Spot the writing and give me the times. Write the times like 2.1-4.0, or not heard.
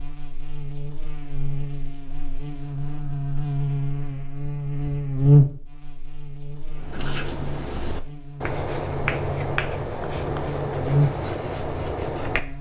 6.7-12.5.